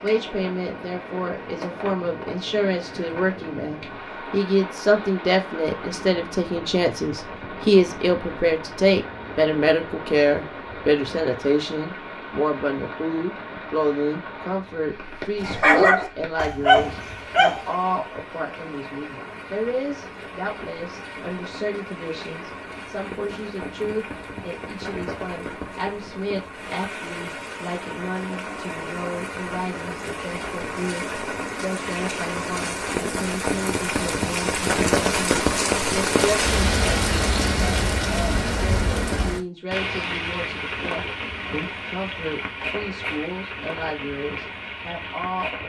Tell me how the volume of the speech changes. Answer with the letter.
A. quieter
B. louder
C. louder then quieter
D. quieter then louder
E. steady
A.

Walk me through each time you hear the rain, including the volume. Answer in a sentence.
The rain can be heard from 0.0 to 45.6 s, getting louder.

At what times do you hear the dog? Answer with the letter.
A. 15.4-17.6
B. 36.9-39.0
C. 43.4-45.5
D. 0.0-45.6
A.